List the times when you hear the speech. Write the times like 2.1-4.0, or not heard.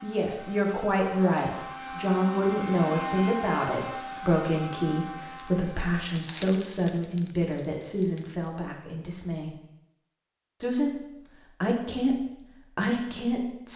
0.0-9.6, 10.6-13.7.